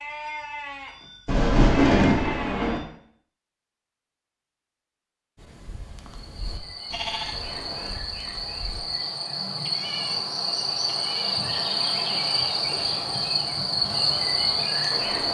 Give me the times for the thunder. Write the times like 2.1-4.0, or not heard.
1.2-2.8.